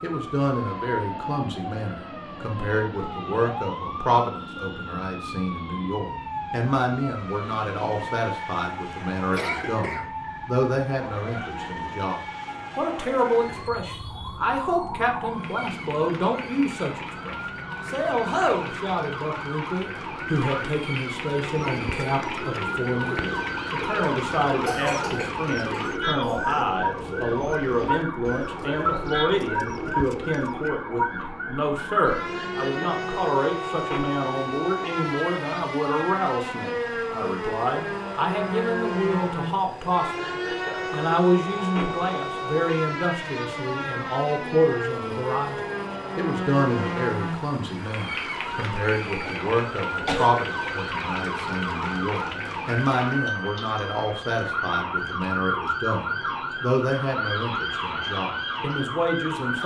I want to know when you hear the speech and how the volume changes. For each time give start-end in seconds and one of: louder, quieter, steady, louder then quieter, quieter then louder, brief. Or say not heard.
0.0-59.6 steady.